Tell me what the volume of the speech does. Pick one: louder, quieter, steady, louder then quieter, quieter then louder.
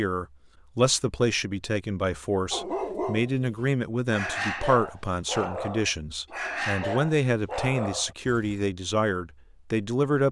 steady.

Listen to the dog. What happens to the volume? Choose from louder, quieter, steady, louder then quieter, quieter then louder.
steady.